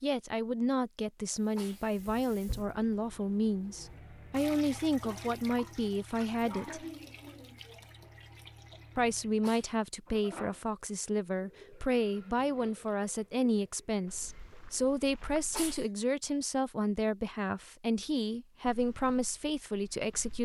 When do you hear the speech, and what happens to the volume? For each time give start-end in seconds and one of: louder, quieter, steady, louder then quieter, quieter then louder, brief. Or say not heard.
0.0-6.8 steady
8.9-20.4 steady.